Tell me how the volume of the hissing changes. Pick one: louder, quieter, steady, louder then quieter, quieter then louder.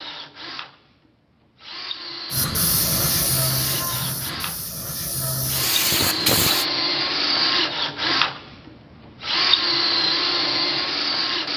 quieter then louder.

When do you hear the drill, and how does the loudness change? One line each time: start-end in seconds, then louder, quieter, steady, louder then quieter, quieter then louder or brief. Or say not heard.
0.0-11.5 louder.